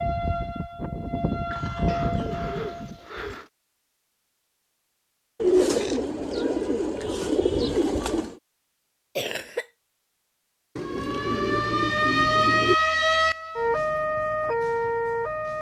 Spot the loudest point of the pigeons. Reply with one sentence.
The volume of the pigeons peaks at 6 seconds.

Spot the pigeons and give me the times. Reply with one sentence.
The pigeons can be heard from 1.9 to 3.5 s, from 5.4 to 8.3 s and from 10.8 to 12.8 s.